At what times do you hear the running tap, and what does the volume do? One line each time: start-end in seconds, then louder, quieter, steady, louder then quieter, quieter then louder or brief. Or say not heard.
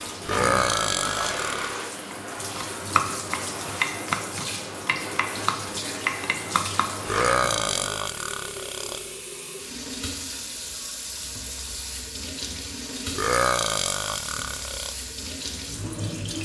0.0-16.4 steady.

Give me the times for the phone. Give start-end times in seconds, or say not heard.
0.3-1.4.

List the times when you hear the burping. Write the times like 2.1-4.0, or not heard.
0.2-1.8, 7.0-9.1, 13.1-14.9.